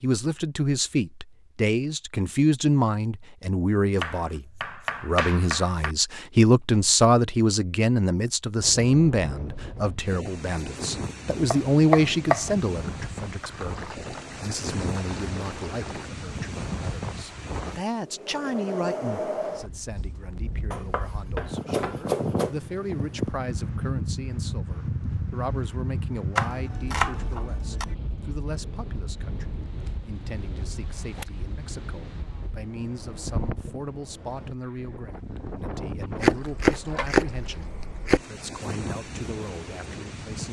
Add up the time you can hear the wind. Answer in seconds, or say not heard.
32 s.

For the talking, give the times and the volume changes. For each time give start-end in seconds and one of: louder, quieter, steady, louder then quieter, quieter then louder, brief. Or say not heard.
0.0-40.4 quieter.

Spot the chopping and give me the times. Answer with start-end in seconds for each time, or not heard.
4.0-6.0, 11.5-12.5, 20.7-22.6, 26.4-27.9, 36.2-38.2.